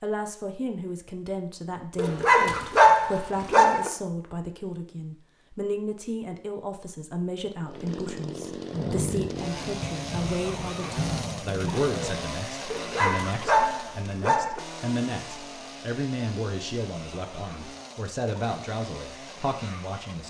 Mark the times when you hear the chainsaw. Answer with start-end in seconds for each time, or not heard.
7.6-20.2.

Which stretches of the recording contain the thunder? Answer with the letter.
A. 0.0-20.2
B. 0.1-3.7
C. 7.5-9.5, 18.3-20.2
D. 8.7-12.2
D.